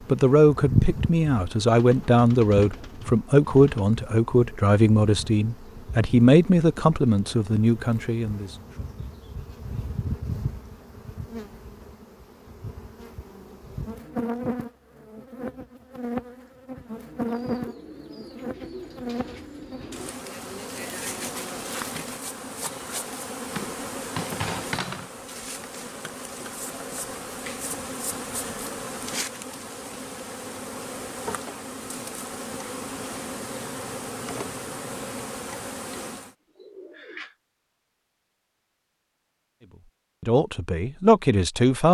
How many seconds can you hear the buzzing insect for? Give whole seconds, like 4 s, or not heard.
36 s.